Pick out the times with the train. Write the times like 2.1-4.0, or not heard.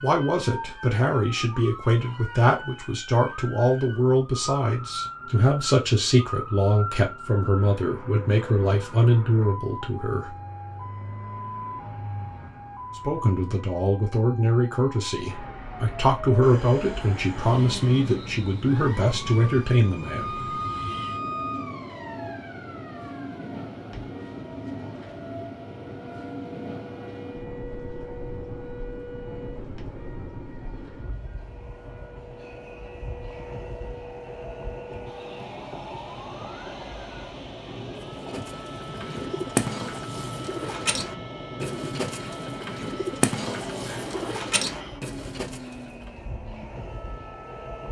16.4-47.8.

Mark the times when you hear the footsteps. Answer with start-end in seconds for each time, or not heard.
not heard.